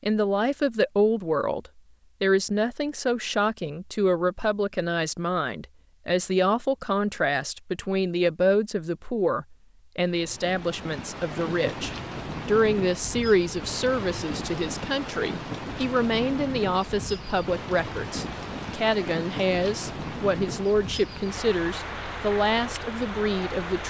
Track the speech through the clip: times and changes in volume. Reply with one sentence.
The speech can be heard from 0.0 to 23.8 s, at a steady volume.